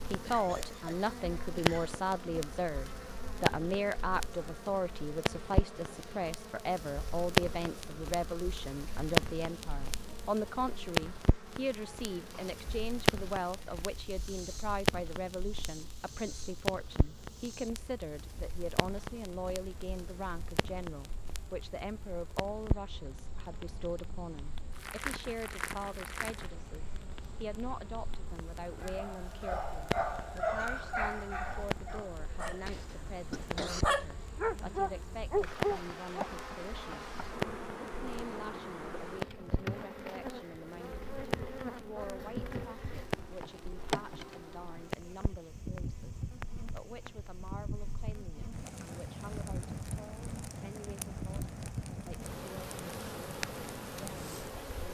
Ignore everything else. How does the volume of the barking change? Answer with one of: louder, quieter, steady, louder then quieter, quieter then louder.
quieter then louder.